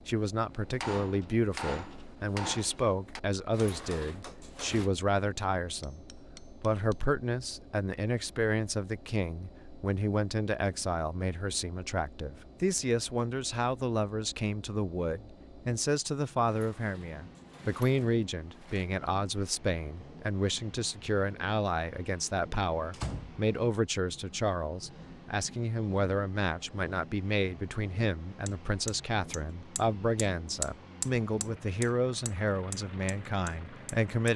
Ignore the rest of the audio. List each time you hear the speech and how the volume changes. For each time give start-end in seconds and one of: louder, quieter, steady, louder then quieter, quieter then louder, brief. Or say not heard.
0.1-34.3 steady.